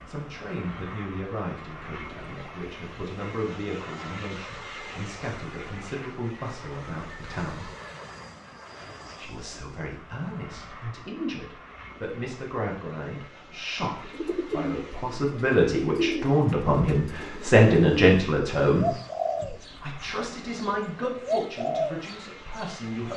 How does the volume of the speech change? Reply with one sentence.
The volume of the speech goes up, then down.